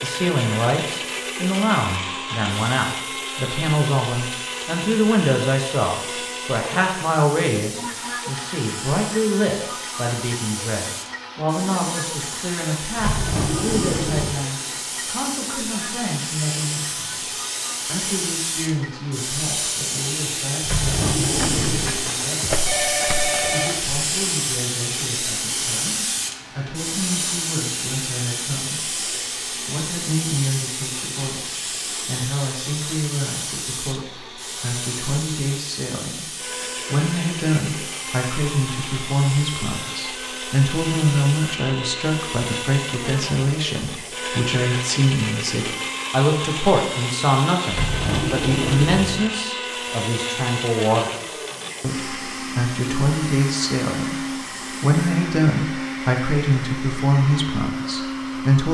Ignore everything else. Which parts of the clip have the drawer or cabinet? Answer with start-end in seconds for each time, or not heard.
12.9-14.3, 20.6-21.9, 47.7-49.3.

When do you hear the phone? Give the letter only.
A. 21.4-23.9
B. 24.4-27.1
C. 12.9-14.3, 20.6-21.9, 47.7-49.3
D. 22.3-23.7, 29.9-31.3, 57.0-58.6
A.